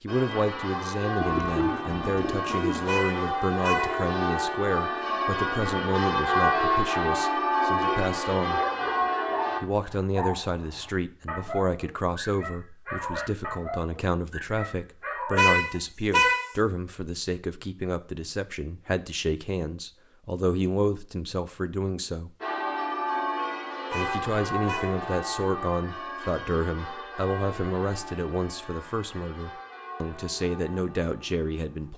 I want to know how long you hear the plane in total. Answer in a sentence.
You can't hear the plane here.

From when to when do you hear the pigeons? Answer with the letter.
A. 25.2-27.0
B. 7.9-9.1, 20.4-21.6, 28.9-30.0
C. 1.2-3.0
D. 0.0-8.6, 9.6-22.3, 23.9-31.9
C.